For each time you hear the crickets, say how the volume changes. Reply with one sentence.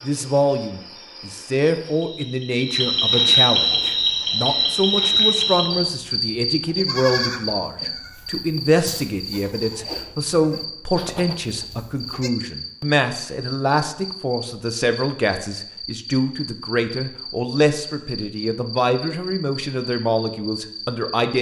You can hear the crickets from 0.0 to 21.3 s, getting quieter.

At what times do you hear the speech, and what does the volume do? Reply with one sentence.
The speech can be heard from 0.0 to 21.3 s, at a steady volume.